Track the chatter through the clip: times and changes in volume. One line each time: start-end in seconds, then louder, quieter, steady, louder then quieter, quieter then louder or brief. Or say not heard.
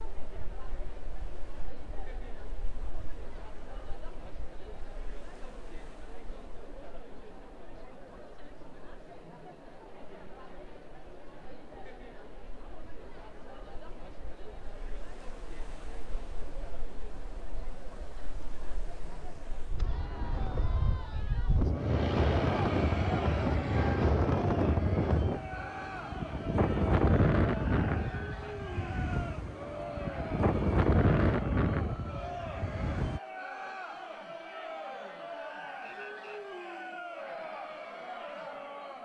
0.0-39.0 louder.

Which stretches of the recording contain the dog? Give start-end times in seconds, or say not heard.
not heard.